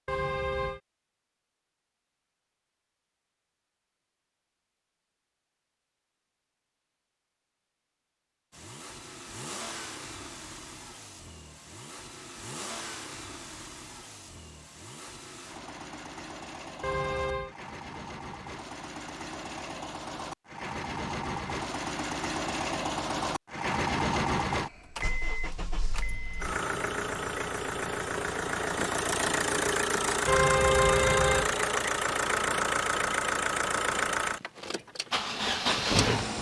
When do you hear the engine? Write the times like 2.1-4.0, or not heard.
8.5-36.3.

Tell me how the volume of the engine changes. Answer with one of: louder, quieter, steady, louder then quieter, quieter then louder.
louder.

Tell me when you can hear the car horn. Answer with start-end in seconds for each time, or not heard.
0.1-0.8, 16.8-17.6, 30.2-31.5.